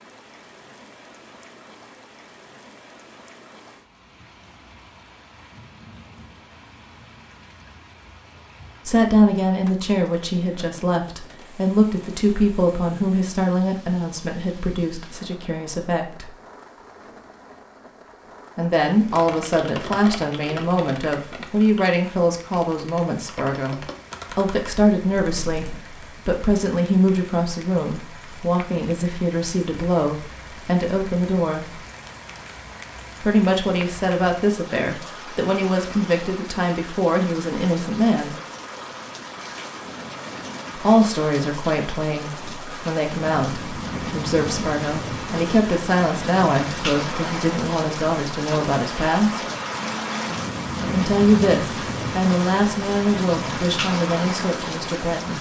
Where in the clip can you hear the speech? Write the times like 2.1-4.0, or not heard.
8.8-16.3, 18.6-31.8, 33.2-38.4, 40.8-49.4, 50.8-55.3.